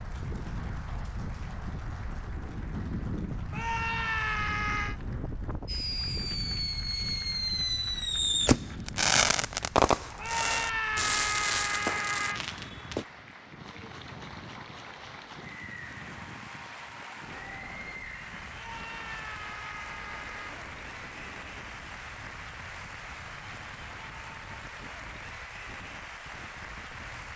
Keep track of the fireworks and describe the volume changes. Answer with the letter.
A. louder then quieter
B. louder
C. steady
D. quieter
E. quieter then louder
A.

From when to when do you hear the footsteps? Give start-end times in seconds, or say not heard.
not heard.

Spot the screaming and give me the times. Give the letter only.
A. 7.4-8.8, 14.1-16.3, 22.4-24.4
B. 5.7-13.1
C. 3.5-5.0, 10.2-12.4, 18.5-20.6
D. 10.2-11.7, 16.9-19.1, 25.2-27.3
C.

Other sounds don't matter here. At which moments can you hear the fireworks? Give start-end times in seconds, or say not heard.
5.7-13.1.